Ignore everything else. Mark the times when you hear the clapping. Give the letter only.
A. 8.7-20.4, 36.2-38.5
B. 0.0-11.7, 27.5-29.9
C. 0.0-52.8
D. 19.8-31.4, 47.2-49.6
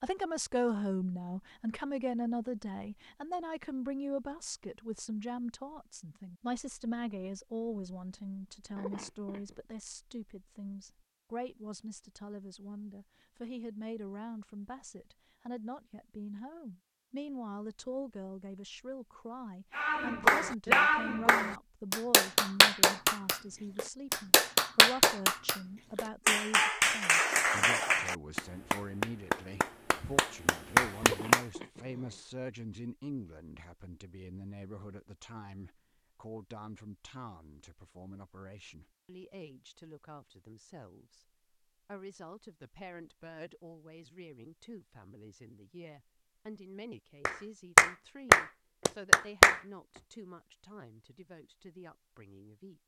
D.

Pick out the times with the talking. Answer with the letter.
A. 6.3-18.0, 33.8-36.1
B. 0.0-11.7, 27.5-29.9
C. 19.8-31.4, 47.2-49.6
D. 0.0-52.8
D.